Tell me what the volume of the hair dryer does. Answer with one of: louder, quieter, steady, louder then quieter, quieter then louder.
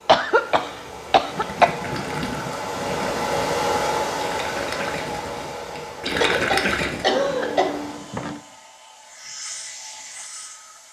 louder then quieter.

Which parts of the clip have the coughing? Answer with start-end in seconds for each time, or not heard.
0.1-1.9, 6.2-8.4.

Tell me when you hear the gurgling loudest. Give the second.
7 s.